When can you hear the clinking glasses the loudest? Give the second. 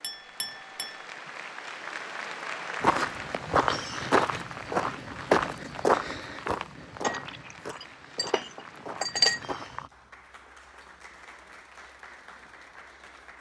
9 s.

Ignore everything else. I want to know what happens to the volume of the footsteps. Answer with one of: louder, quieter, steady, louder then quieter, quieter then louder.
quieter.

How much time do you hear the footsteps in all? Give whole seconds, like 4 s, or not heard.
7 s.